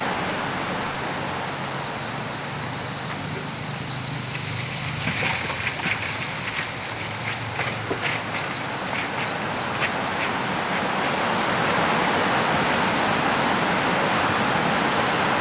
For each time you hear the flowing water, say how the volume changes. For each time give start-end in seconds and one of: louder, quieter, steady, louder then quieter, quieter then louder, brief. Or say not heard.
0.0-15.3 quieter then louder.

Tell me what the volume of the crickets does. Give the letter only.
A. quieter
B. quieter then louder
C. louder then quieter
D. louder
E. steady
C.